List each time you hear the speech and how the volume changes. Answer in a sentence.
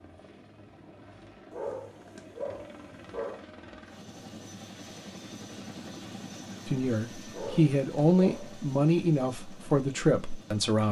You can hear the speech from 6.7 to 10.8 s, at a steady volume.